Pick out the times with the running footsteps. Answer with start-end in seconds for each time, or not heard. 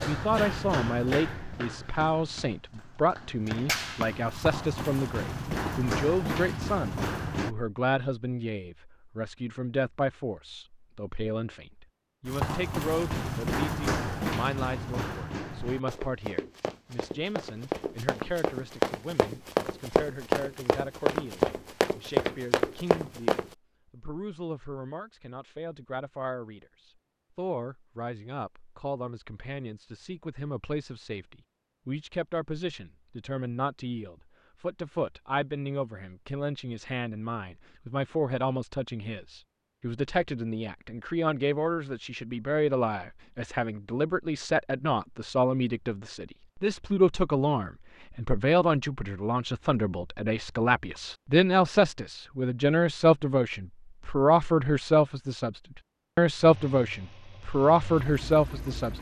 0.0-7.5, 12.2-23.5.